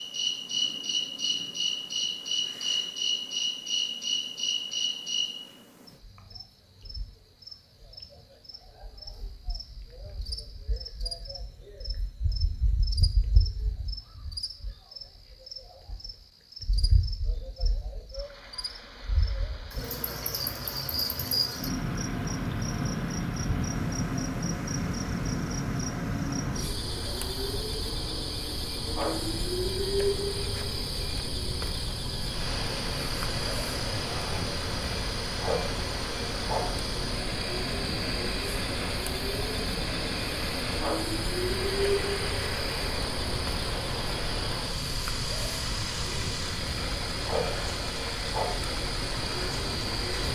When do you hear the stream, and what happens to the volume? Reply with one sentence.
You can hear the stream from 18.1 to 50.3 s, getting louder.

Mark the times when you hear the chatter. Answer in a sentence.
The chatter can't be heard in this clip.